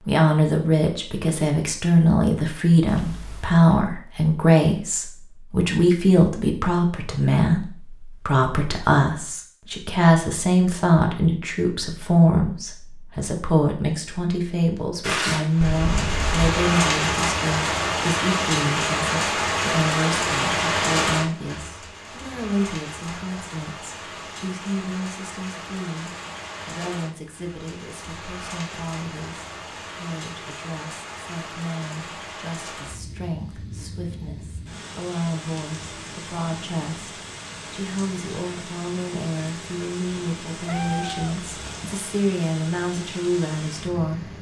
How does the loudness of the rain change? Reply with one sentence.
The loudness of the rain goes down.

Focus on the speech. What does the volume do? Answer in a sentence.
The loudness of the speech goes down, then up.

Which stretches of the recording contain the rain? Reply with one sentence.
You can hear the rain from 15.0 to 44.3 s.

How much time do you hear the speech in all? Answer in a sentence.
The speech can be heard for 44 seconds in total.